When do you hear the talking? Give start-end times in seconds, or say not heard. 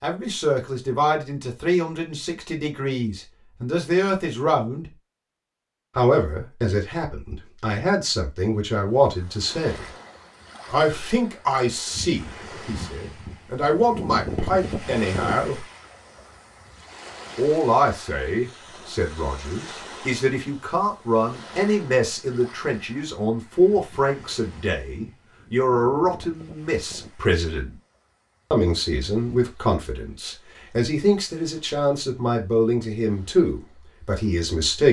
0.0-4.8, 6.0-9.8, 10.7-15.6, 17.4-27.7, 28.5-34.8.